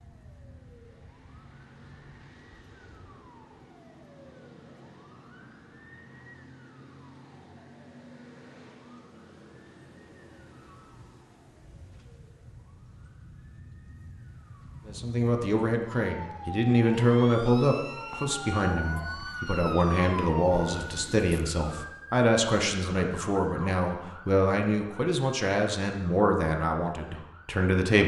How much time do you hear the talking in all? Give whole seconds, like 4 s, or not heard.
13 s.